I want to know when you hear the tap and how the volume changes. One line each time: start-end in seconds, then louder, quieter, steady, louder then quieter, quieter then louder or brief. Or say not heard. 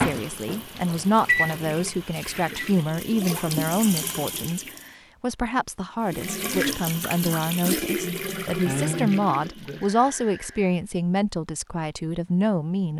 0.0-4.9 louder
6.0-10.8 quieter.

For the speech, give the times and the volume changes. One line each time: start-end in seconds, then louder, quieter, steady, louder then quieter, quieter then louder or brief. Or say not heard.
0.0-12.9 steady.